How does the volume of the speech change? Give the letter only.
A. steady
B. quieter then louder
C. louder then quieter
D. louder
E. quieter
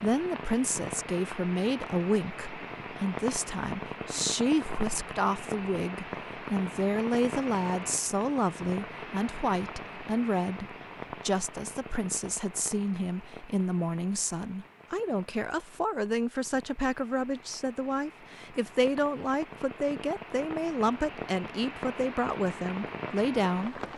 A.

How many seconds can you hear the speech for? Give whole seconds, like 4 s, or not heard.
24 s.